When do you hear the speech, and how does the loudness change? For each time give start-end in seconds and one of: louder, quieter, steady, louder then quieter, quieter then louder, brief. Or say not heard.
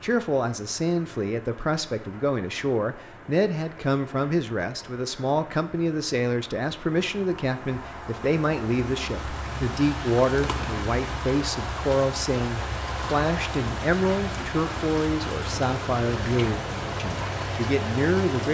0.0-18.4 steady.